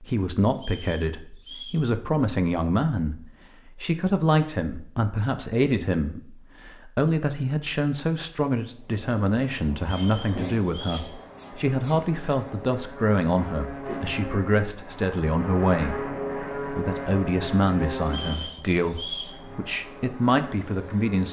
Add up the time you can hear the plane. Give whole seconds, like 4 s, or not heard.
11 s.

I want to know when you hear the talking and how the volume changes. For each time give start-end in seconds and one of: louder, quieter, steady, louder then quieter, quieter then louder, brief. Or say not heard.
0.0-21.2 steady.